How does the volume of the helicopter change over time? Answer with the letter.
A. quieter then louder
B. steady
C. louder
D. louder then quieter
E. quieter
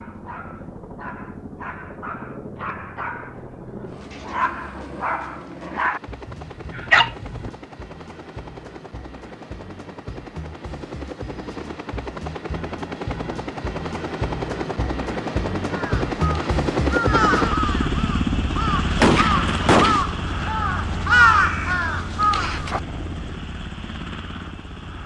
D.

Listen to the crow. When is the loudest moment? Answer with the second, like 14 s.
21 s.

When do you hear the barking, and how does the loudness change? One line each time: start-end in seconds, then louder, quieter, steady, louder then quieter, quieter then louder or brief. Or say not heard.
0.0-7.5 louder.